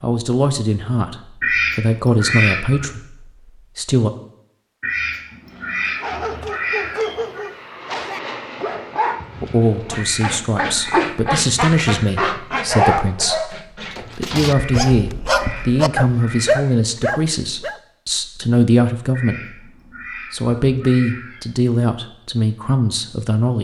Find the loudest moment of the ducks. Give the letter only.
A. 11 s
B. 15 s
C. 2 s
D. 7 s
C.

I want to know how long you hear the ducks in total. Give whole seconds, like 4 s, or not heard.
11 s.